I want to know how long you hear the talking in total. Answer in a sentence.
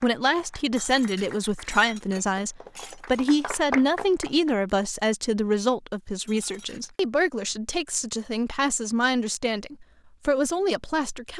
The talking can be heard for 11 seconds in total.